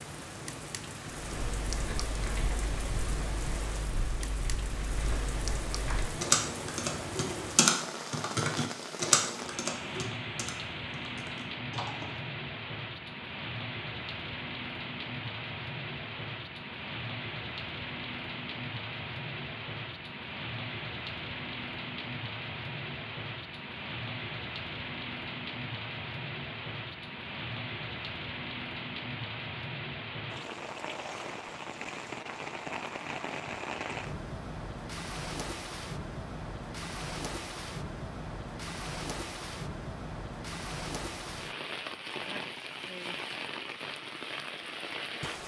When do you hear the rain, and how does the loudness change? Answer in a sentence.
The rain can be heard from 0.0 to 45.4 s, at a steady volume.